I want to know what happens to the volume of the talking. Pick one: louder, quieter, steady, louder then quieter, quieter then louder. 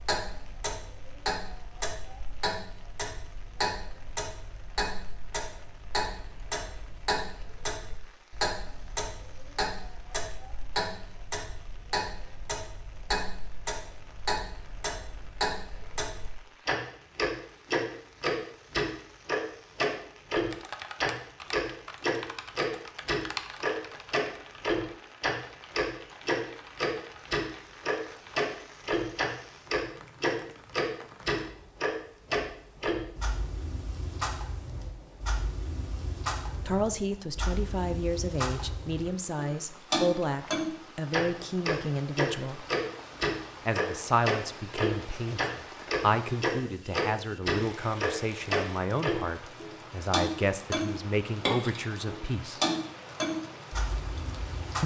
steady.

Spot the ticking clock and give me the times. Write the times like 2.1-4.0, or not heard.
0.0-54.8.